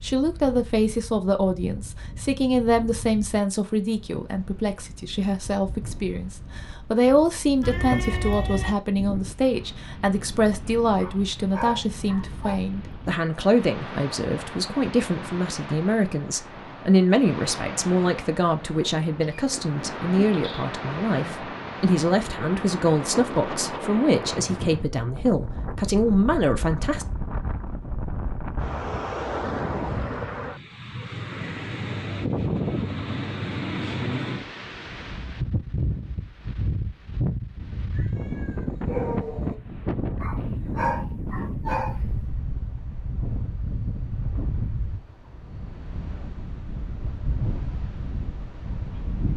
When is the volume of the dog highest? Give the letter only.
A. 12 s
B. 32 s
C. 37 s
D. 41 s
D.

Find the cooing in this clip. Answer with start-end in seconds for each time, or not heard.
not heard.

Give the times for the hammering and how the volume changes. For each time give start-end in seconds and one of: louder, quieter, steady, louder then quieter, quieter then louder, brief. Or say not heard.
not heard.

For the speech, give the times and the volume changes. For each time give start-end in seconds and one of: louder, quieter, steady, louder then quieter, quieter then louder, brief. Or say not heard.
0.0-27.1 steady.